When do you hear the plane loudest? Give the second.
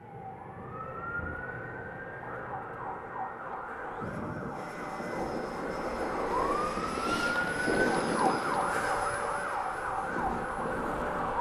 8 s.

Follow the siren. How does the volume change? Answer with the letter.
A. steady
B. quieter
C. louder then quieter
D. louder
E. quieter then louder
D.